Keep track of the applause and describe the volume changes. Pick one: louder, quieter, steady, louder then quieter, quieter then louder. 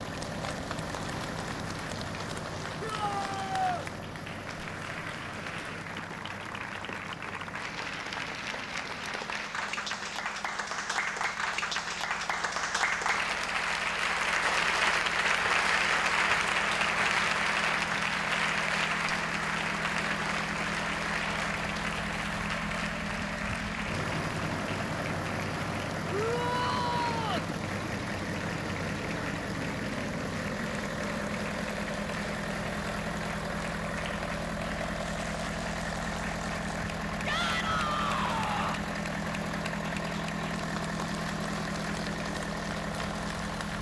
louder then quieter.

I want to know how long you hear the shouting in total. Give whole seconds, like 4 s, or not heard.
4 s.